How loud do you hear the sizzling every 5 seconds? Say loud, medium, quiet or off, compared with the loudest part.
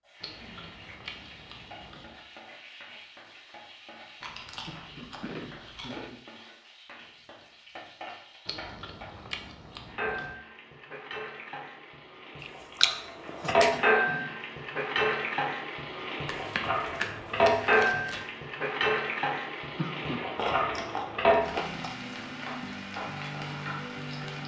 quiet, quiet, loud, loud, loud.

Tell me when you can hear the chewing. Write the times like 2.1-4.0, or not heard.
0.2-2.2, 4.2-6.1, 8.4-10.3, 12.4-13.8, 16.2-18.2, 20.4-21.9.